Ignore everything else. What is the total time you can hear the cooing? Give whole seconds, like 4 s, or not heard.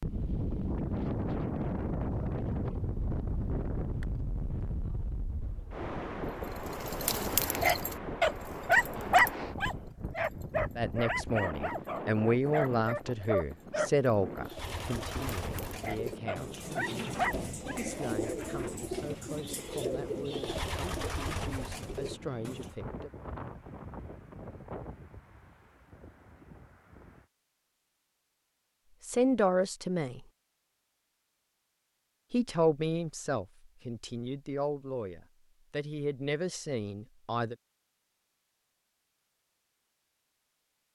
8 s.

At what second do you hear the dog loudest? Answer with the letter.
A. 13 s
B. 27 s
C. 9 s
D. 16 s
C.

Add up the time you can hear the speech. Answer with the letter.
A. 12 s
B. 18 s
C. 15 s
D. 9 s
B.